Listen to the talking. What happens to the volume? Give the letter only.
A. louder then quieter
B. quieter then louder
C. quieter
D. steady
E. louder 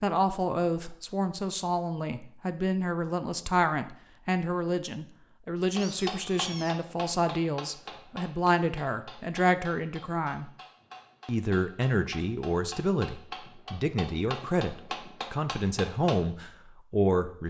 D.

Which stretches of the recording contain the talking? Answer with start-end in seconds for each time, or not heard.
0.0-10.5, 11.2-17.4.